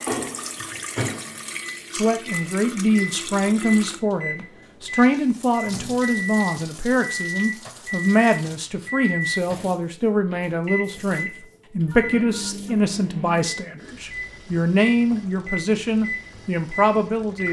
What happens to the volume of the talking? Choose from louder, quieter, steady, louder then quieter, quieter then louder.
steady.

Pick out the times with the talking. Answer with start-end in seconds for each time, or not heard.
1.9-17.4.